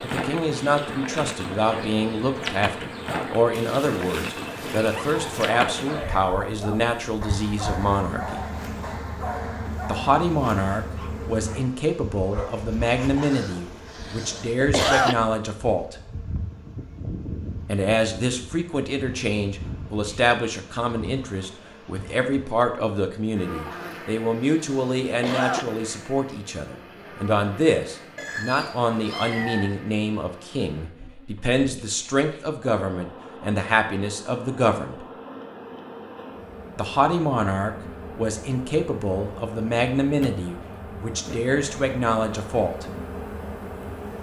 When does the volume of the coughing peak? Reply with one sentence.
The volume of the coughing peaks at 15 seconds.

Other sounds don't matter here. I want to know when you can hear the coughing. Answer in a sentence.
The coughing can be heard from 13.2 to 15.2 s and from 23.6 to 25.6 s.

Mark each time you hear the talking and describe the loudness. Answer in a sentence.
You can hear the talking from 0.0 to 8.4 s, at a steady volume; from 9.8 to 15.9 s, getting quieter then louder; from 17.6 to 35.0 s, at a steady volume; and from 36.8 to 42.9 s, getting quieter then louder.